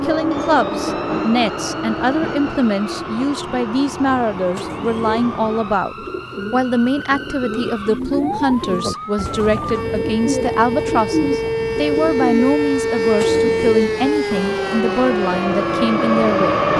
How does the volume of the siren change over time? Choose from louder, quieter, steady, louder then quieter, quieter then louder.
louder.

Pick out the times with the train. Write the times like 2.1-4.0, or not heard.
0.0-5.8, 14.2-16.7.